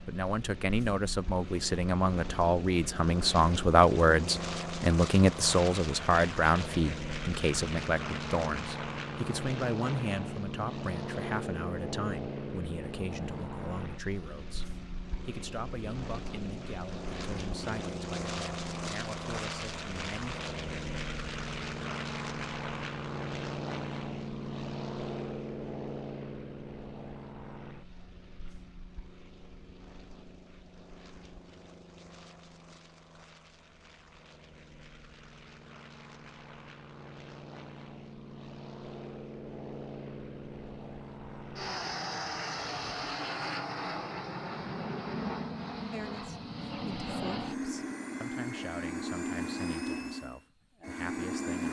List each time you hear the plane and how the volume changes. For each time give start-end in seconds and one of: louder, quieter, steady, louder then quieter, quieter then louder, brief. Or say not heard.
0.0-51.6 quieter then louder.